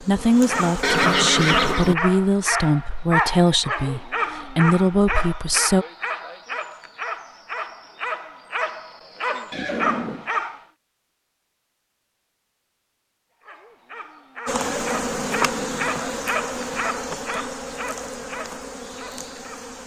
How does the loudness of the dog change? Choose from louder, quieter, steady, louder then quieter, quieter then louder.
quieter.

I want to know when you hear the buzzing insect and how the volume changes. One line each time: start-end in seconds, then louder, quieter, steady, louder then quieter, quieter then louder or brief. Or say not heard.
0.0-1.8 brief
14.4-19.8 quieter.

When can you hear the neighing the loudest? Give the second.
1 s.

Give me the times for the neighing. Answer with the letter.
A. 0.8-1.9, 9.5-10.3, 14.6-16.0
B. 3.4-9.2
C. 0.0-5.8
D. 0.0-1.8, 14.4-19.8
A.